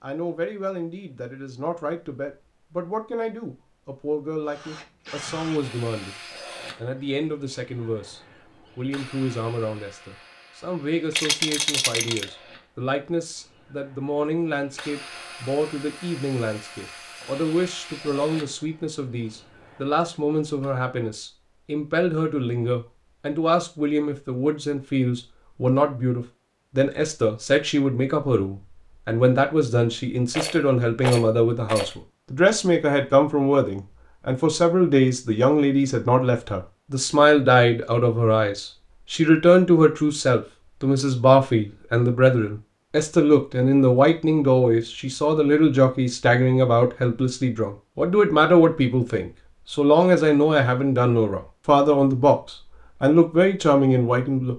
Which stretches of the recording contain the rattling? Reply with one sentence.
You can hear the rattling from 11.1 to 12.3 s and from 30.3 to 31.9 s.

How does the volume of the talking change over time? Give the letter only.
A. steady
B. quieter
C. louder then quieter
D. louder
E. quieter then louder
D.